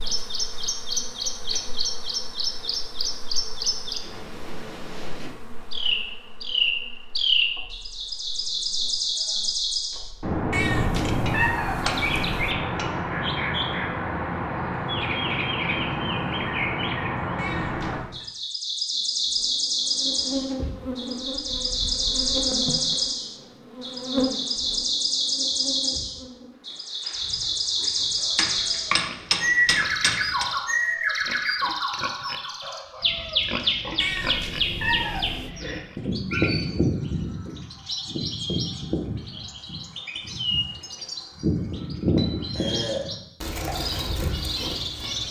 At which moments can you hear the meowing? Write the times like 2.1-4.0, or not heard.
10.5-12.6, 17.4-18.2, 34.0-35.5.